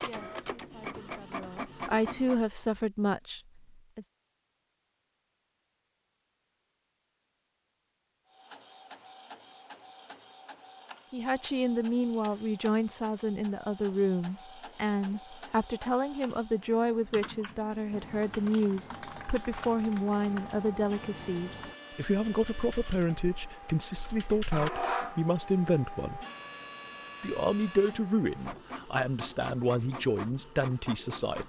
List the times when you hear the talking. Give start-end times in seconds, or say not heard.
0.0-4.0, 11.1-26.2, 27.2-31.4.